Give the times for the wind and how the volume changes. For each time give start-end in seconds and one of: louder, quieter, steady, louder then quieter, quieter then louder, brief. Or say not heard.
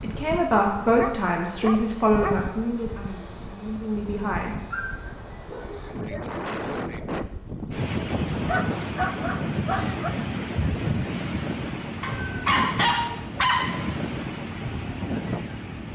0.0-15.9 louder.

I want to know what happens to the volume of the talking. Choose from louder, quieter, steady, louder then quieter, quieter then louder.
quieter.